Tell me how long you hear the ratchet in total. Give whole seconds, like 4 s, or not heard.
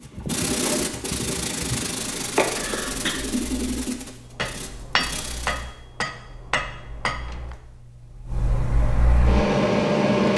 not heard.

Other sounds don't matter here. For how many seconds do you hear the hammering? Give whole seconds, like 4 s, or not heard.
3 s.